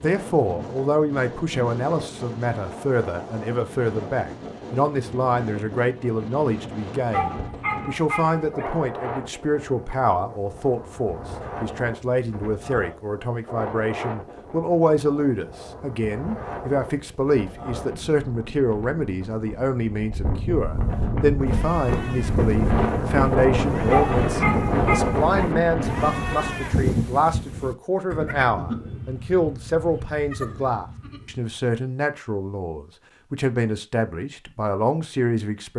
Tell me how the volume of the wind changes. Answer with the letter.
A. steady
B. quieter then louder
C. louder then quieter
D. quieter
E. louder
E.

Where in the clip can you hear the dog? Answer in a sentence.
You can hear the dog from 7.1 to 8.7 s and from 23.9 to 25.5 s.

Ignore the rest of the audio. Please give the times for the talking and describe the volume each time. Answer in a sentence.
You can hear the talking from 0.0 to 35.7 s, at a steady volume.